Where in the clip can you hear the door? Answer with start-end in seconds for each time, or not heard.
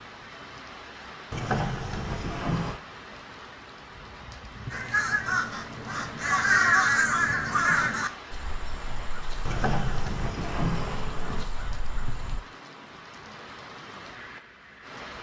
1.3-2.8, 9.4-11.4.